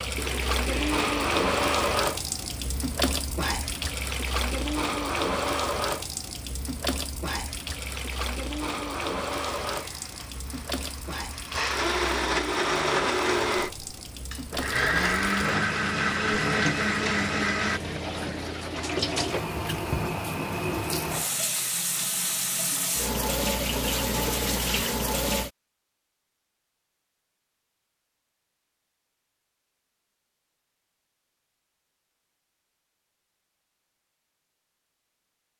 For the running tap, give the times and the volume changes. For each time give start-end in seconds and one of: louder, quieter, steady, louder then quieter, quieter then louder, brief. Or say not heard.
0.0-25.5 quieter then louder.